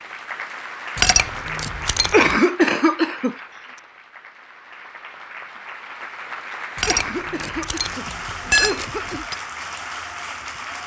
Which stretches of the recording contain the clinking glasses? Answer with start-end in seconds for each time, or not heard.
0.9-2.4, 6.8-9.3.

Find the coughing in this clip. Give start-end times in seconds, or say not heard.
2.1-3.4, 6.8-9.2.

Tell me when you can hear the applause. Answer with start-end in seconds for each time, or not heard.
0.0-10.8.